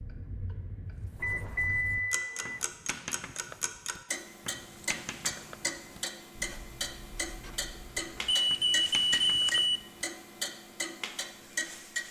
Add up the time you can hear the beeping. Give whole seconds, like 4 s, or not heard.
3 s.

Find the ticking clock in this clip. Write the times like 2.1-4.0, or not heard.
0.0-12.0.